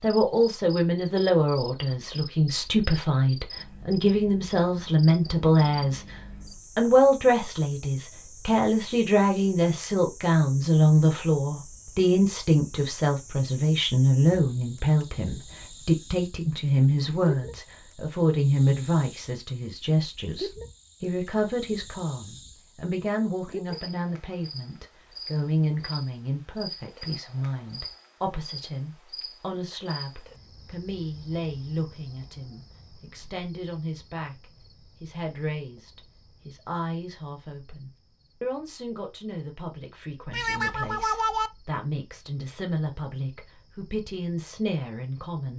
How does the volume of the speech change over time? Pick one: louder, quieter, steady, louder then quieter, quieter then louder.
quieter.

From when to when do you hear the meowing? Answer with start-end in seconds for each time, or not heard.
40.3-41.5.